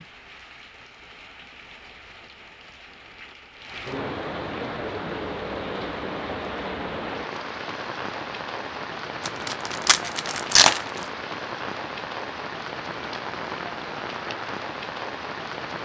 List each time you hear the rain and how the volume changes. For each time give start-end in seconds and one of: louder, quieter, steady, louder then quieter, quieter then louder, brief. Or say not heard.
0.0-15.8 louder.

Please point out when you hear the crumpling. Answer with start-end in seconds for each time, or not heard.
9.2-11.1.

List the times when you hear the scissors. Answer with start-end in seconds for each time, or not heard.
not heard.